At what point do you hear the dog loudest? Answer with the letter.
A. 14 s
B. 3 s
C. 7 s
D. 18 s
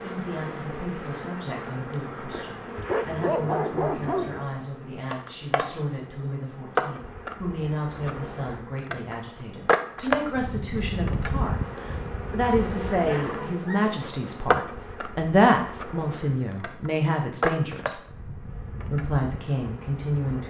B.